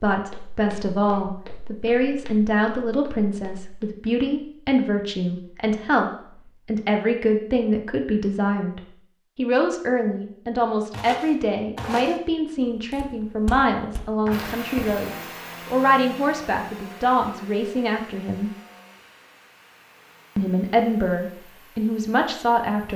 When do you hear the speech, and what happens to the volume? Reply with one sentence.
The speech can be heard from 0.0 to 18.5 s, at a steady volume; and briefly from 20.4 to 22.9 s.